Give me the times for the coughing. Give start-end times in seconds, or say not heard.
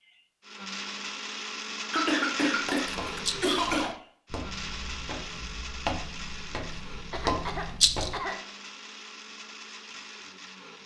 1.9-4.0, 7.1-8.4.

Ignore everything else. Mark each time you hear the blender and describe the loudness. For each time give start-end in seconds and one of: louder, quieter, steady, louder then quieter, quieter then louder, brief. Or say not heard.
0.0-10.8 quieter.